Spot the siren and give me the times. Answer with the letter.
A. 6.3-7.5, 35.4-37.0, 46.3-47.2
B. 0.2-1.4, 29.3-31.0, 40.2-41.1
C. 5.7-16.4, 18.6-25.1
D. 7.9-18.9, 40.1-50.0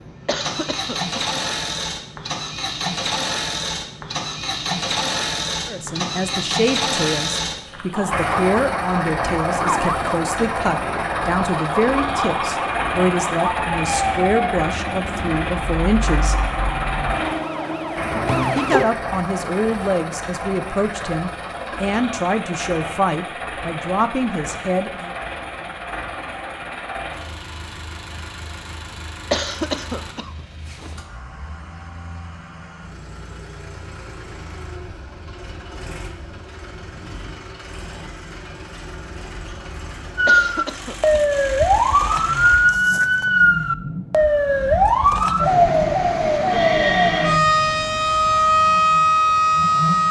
D.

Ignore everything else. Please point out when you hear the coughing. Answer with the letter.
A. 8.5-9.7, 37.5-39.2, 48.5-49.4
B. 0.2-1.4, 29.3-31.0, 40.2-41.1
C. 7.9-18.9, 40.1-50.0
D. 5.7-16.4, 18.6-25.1
B.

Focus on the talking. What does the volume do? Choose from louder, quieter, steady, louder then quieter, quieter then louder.
steady.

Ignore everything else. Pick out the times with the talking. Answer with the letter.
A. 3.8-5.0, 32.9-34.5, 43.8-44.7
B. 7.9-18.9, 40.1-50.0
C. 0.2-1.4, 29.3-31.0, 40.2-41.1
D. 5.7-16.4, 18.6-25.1
D.